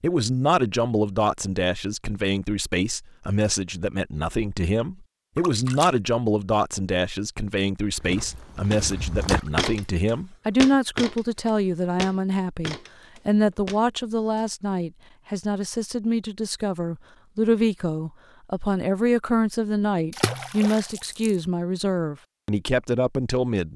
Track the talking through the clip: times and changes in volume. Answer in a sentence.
You can hear the talking from 0.0 to 23.7 s, at a steady volume.